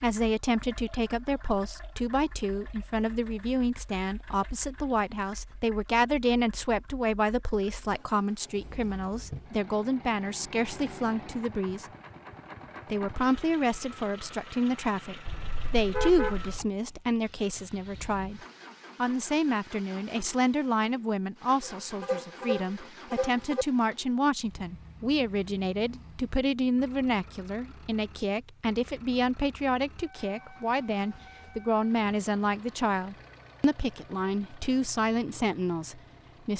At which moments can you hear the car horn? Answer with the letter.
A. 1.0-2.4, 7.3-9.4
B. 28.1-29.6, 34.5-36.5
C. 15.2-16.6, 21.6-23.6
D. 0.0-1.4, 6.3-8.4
C.